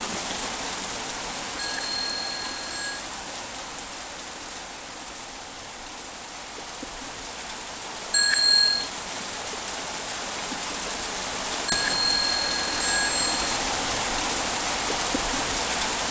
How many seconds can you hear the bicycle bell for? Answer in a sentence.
You can hear the bicycle bell for 4 seconds altogether.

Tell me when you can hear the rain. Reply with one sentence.
You can hear the rain from 0.0 to 16.0 s.